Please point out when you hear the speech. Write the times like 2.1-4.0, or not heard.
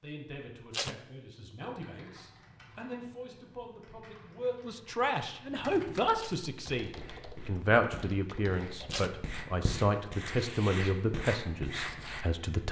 0.0-12.6.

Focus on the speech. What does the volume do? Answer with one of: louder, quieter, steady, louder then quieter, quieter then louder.
louder.